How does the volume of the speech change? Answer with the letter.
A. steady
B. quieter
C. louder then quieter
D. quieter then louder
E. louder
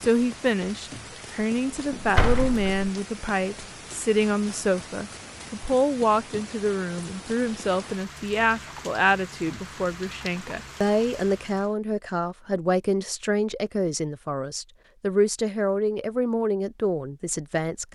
A.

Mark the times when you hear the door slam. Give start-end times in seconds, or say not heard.
1.9-2.8.